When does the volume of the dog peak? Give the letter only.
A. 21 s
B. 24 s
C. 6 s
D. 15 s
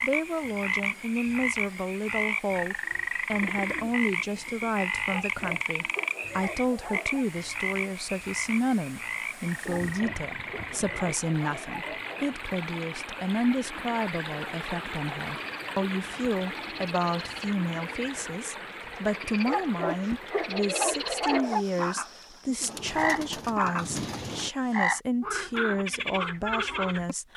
A.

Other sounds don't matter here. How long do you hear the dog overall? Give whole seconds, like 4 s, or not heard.
7 s.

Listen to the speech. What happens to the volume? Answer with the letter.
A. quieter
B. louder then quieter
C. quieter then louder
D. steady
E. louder
D.